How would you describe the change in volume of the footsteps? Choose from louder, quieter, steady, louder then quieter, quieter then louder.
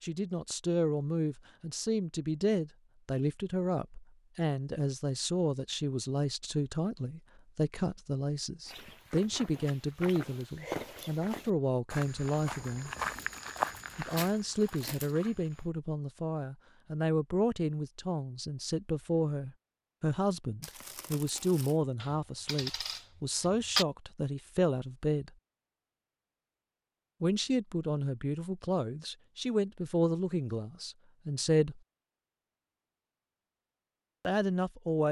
louder then quieter.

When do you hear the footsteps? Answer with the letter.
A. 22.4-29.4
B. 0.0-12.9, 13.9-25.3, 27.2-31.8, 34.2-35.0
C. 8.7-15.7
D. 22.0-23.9
C.